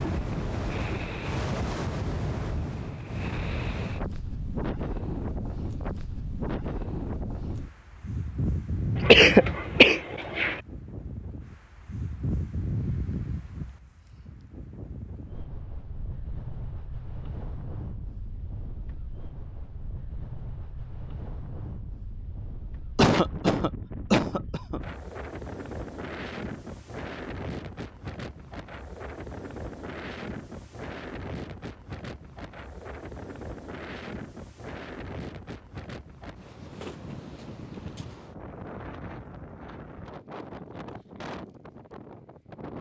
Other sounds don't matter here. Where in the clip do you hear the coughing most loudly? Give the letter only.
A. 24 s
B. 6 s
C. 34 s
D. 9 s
D.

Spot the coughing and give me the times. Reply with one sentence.
The coughing can be heard from 8.9 to 10.6 s and from 22.9 to 24.8 s.